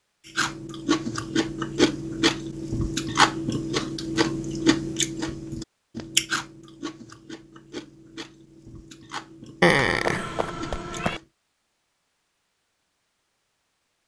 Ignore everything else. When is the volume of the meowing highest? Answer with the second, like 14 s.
10 s.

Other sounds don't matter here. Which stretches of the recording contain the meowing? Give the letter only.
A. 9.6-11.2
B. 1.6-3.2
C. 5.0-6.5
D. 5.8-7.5
A.